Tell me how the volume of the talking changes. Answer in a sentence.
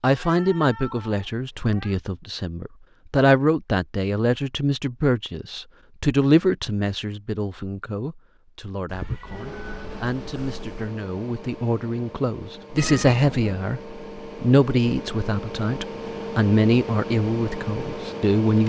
The loudness of the talking goes down, then up.